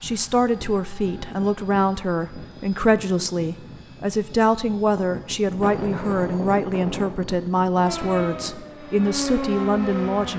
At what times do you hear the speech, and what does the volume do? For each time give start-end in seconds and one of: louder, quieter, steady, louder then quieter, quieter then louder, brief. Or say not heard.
0.0-10.3 steady.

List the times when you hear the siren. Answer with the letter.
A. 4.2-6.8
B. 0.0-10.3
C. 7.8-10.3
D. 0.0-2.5
C.